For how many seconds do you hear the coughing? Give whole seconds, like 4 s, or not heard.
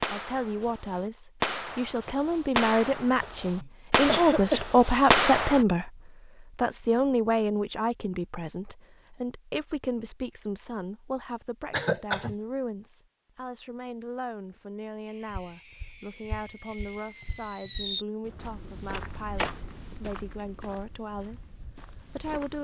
2 s.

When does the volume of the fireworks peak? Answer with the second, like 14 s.
5 s.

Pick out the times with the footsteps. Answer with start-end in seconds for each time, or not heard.
15.2-22.6.